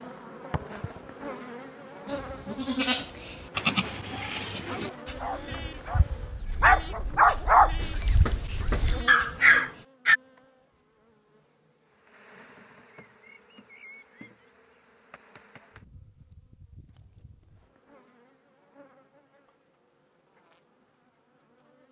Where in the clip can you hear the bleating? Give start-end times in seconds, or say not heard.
2.0-9.6.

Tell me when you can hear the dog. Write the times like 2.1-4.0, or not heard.
4.7-10.2.